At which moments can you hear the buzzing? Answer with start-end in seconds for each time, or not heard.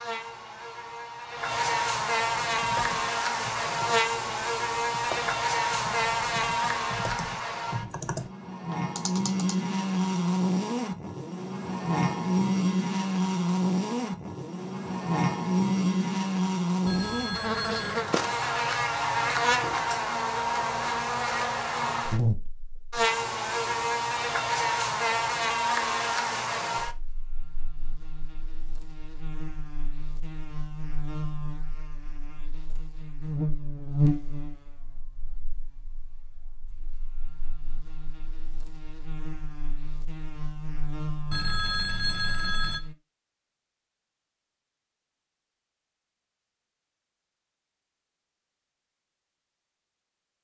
0.0-43.0.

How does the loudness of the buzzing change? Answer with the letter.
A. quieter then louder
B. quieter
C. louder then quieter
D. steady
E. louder
B.